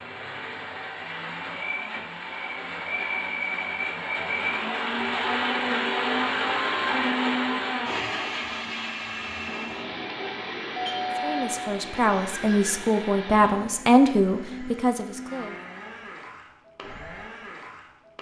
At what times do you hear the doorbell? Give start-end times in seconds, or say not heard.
10.8-12.8.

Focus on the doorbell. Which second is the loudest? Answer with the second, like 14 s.
11 s.